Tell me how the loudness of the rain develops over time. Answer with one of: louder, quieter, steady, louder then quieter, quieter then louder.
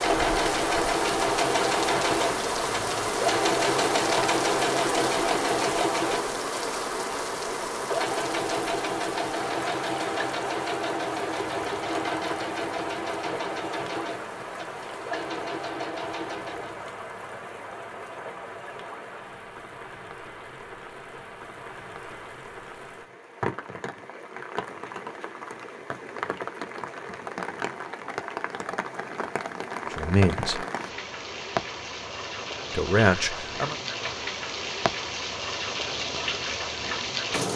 quieter then louder.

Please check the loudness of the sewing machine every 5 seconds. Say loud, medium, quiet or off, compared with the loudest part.
loud, loud, medium, medium, off, off, off, off.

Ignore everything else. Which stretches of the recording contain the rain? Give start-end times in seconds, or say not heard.
0.0-37.5.